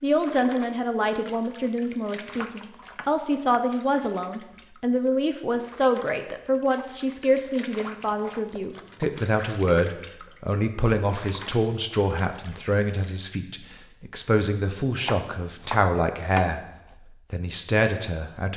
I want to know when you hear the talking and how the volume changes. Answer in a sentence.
You can hear the talking from 0.0 to 16.6 s, at a steady volume; and briefly from 17.3 to 18.5 s.